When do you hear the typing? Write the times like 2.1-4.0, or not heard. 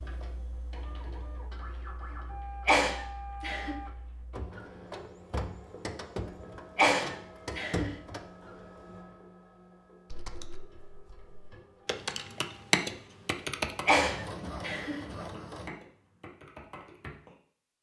0.0-4.5, 10.1-17.4.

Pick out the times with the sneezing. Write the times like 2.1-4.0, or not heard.
2.6-3.8, 6.8-7.9, 13.8-15.0.